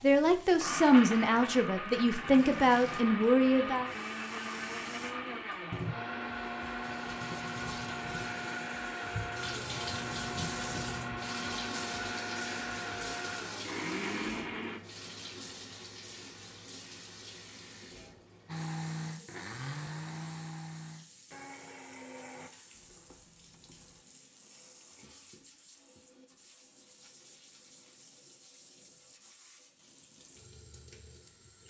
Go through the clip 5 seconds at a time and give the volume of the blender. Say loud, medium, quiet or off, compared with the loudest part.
loud, loud, loud, loud, medium, off, off.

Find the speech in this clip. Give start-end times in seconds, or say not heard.
0.0-3.9.